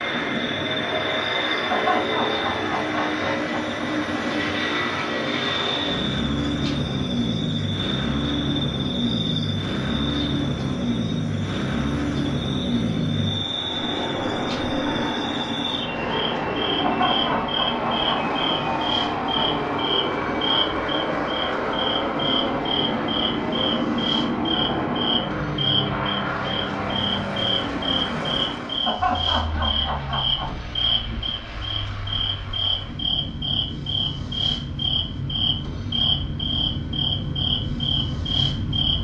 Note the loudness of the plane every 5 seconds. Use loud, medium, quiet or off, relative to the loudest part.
loud, loud, loud, loud, loud, loud, medium, medium.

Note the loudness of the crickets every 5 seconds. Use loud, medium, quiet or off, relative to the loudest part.
medium, medium, medium, loud, loud, loud, loud, loud.